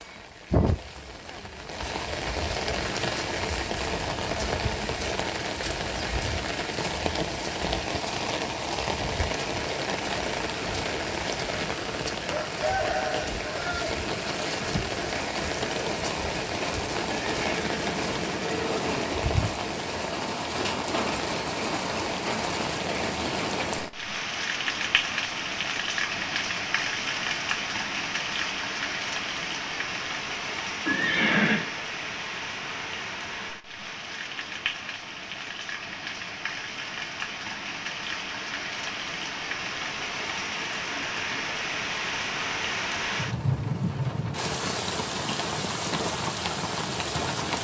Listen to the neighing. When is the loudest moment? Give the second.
31 s.